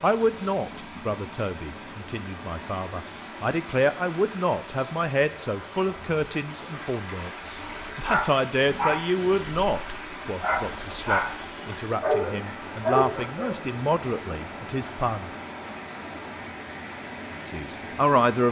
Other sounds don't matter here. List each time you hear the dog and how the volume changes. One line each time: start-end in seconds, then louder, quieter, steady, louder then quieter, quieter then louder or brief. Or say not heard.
7.5-13.6 quieter then louder.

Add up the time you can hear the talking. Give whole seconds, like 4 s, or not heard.
16 s.